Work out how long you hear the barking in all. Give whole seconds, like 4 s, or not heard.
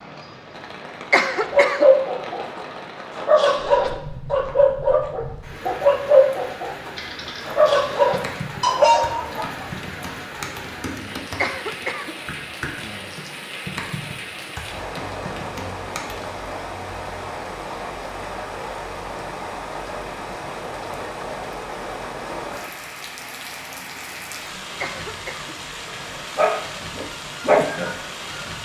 11 s.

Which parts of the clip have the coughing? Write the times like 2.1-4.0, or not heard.
1.1-1.9, 11.3-12.2, 24.8-25.6.